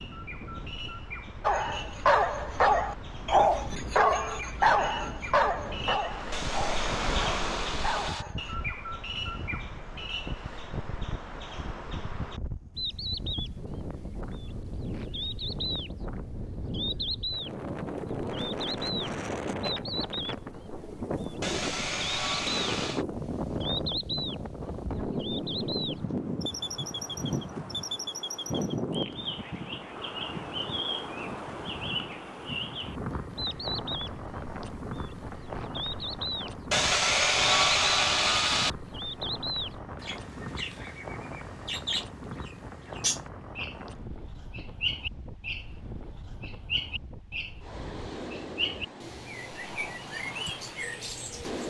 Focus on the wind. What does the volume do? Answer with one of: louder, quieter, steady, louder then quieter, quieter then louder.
louder then quieter.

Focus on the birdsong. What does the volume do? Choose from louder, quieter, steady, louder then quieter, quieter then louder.
steady.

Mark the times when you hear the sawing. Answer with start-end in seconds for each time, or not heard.
6.3-8.2, 21.4-23.1, 36.7-38.7.